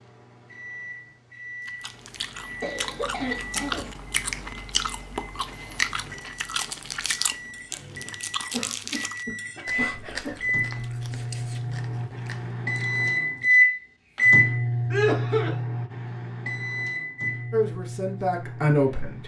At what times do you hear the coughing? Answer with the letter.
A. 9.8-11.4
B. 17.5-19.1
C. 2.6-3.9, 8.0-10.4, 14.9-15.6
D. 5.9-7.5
C.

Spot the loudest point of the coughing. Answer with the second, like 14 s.
15 s.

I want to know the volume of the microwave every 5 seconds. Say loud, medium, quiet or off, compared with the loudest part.
quiet, quiet, loud, medium.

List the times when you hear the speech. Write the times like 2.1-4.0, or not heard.
17.5-19.1.